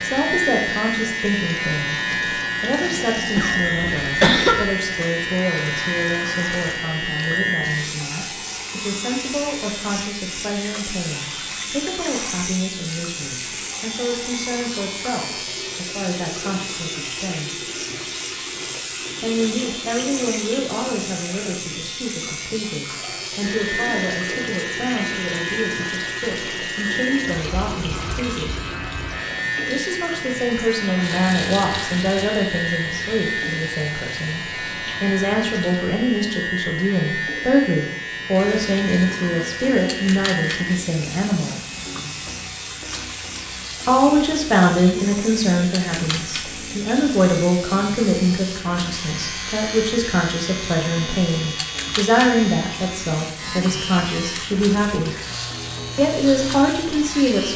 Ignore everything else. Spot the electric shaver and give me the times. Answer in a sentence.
You can hear the electric shaver from 0.0 to 57.5 s.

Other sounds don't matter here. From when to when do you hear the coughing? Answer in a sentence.
You can hear the coughing from 3.4 to 4.8 s.